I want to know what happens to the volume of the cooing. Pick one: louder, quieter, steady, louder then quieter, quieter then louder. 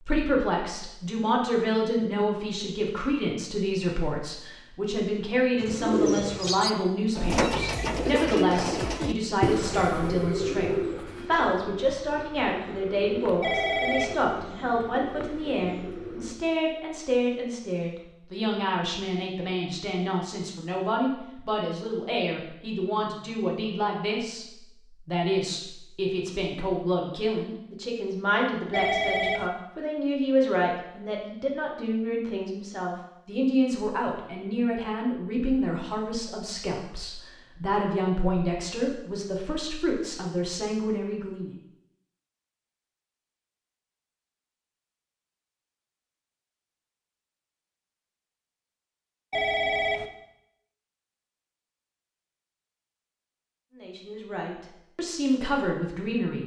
quieter.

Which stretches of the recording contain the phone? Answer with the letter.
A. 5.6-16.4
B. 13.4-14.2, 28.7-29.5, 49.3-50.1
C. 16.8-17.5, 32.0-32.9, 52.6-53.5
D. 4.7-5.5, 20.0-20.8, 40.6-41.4
B.